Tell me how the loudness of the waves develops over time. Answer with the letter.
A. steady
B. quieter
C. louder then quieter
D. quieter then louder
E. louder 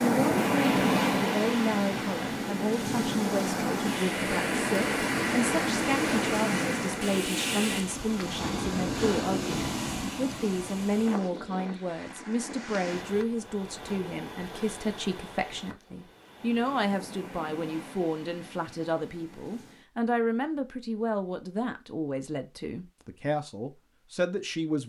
B.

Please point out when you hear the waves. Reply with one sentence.
You can hear the waves from 0.0 to 19.9 s.